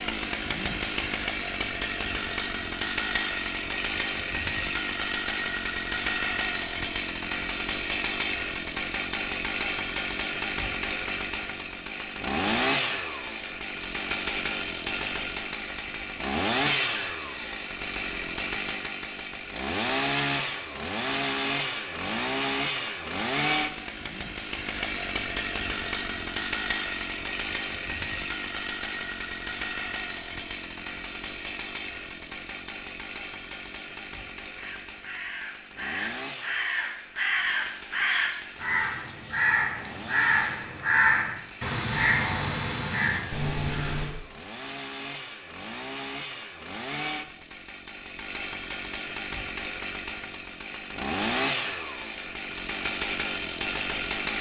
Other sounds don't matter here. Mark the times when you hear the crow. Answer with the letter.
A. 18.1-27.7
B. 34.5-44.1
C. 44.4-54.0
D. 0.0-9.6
B.